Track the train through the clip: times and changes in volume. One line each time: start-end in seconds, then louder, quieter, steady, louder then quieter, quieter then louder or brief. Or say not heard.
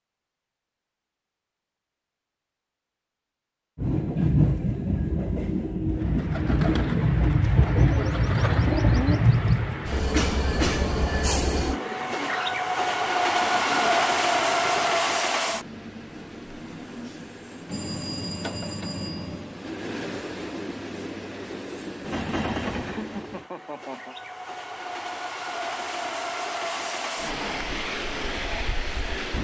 3.8-29.3 quieter.